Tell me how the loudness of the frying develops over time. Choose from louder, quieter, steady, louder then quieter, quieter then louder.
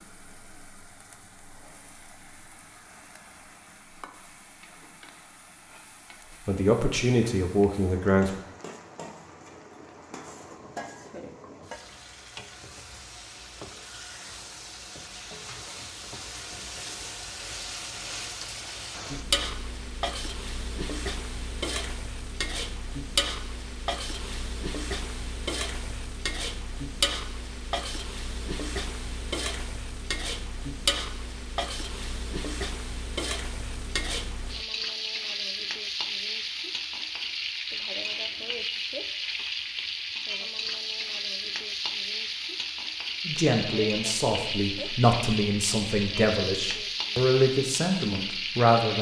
louder.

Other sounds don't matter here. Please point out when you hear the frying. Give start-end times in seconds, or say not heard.
0.0-48.9.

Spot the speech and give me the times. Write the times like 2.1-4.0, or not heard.
6.5-8.4, 43.2-48.9.